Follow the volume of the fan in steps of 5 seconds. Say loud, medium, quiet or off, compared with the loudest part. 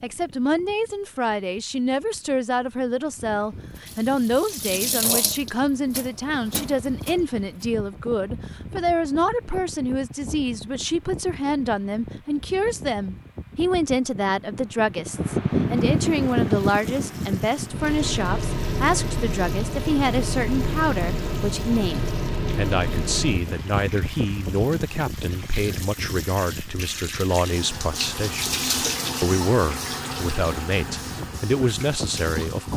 quiet, quiet, quiet, loud, loud, quiet, medium.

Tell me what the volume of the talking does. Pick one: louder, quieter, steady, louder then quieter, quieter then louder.
steady.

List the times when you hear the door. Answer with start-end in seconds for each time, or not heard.
not heard.